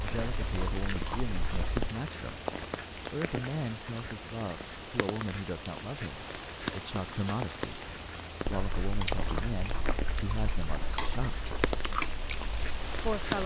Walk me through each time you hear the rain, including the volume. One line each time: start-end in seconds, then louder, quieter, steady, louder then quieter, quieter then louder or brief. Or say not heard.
0.0-13.4 steady.